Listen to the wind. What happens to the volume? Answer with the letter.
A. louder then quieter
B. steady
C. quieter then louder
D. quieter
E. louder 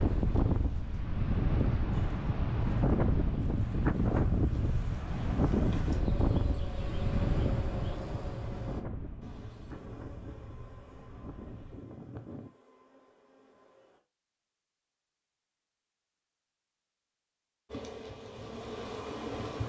D.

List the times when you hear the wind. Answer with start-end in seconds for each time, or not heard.
0.0-12.5.